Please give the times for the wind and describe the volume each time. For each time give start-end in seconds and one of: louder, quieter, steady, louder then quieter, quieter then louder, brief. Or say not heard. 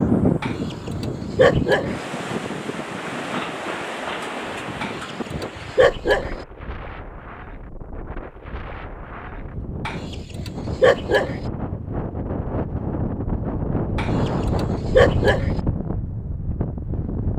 0.0-17.3 quieter then louder.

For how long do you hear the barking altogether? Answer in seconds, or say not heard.
6 s.